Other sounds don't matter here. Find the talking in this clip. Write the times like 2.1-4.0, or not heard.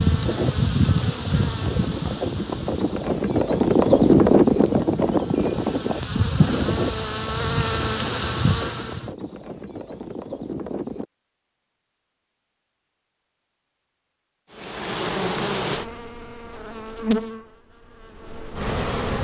not heard.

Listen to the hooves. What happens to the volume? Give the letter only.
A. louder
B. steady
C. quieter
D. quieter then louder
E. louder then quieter
E.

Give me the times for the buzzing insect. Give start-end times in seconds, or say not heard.
0.0-9.1, 14.5-19.1.